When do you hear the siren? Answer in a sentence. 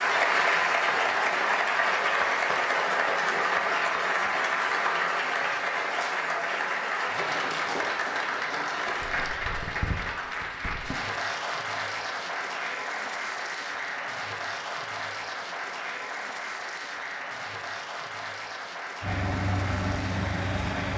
You can't hear the siren here.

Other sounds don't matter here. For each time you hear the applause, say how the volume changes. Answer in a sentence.
You can hear the applause from 0.0 to 20.9 s, getting quieter.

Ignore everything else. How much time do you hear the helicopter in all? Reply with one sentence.
The helicopter can be heard for 2 seconds in total.